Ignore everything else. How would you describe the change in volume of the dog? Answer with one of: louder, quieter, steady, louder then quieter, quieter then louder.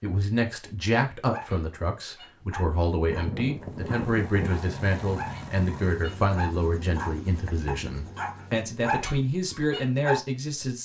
louder.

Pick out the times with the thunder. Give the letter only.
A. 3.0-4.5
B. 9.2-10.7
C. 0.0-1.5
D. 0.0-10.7
A.